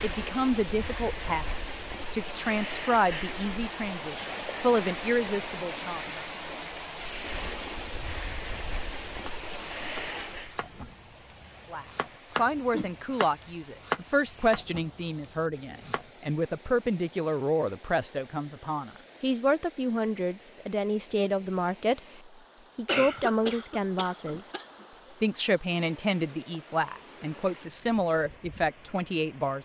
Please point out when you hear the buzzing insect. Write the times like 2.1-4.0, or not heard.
not heard.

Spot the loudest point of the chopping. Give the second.
14 s.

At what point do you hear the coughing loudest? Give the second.
23 s.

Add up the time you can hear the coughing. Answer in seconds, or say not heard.
2 s.